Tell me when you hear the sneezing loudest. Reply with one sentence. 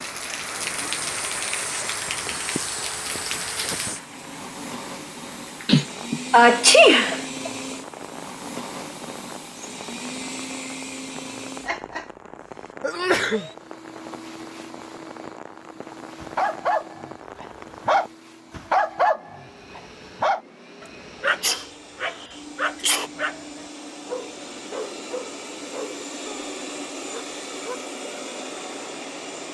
The volume of the sneezing peaks at 7 seconds.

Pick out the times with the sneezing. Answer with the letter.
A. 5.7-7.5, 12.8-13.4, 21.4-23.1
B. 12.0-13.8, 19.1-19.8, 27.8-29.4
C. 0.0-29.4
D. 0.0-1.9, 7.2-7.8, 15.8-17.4
A.